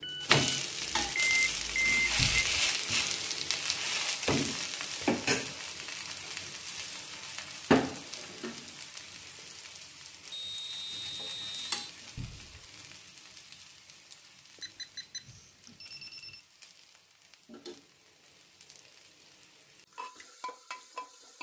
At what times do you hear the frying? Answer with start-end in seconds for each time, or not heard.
0.0-21.3.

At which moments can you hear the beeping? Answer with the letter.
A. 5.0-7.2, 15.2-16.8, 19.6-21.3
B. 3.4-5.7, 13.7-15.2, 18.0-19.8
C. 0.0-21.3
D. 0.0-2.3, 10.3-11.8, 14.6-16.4
D.